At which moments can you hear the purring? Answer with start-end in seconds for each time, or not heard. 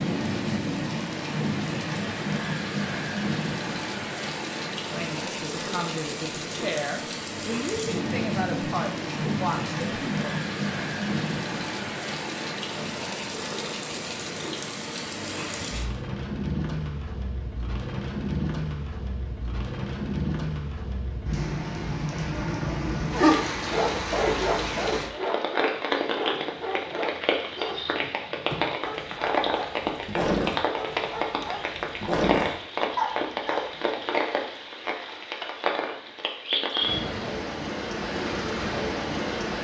not heard.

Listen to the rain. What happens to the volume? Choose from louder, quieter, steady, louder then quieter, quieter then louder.
steady.